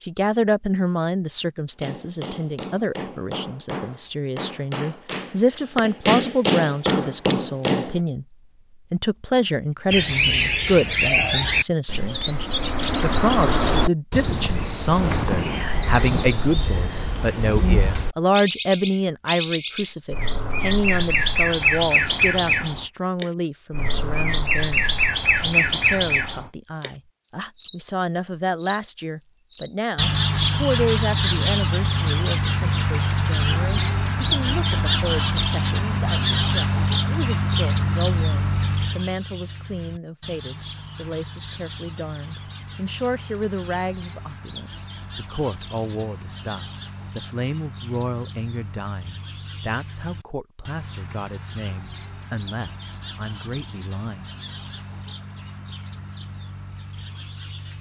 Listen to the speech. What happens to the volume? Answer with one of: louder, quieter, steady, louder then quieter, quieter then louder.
quieter.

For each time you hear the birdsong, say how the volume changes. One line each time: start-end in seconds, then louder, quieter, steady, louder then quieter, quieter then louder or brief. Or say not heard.
9.9-57.7 quieter.